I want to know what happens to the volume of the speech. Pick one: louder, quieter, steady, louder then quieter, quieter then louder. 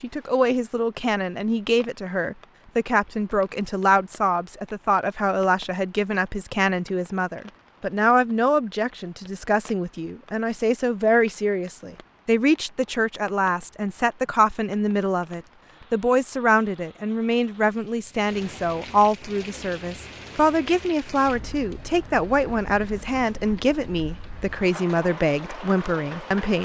steady.